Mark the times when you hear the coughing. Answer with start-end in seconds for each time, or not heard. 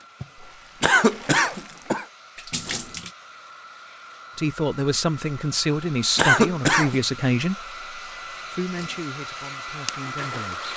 0.8-2.0, 6.2-7.0.